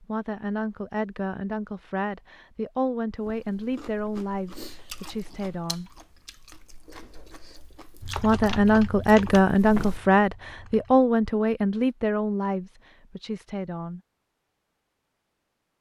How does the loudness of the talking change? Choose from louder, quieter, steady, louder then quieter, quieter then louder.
louder then quieter.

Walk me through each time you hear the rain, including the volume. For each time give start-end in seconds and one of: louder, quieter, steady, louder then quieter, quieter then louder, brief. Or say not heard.
not heard.